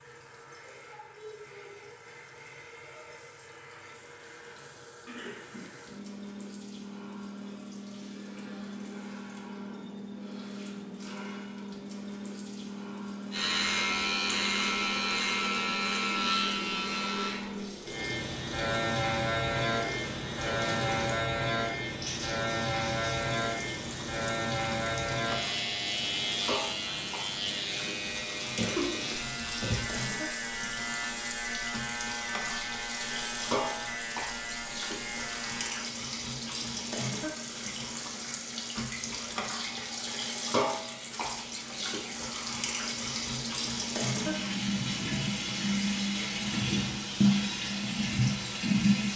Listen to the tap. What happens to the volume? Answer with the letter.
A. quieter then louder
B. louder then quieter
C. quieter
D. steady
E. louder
E.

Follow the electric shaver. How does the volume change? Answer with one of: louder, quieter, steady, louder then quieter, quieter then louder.
quieter.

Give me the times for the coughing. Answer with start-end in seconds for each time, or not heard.
5.0-5.7, 28.4-30.0.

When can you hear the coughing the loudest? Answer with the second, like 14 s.
29 s.